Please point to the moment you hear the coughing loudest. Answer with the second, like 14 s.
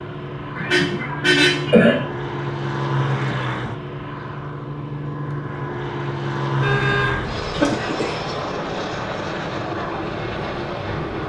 2 s.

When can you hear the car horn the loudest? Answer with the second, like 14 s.
1 s.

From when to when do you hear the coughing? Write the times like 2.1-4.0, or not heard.
0.6-2.0, 7.5-8.2.